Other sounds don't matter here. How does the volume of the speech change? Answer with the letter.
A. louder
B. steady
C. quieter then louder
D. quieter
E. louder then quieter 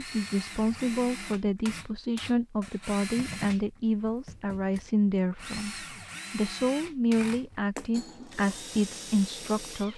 B.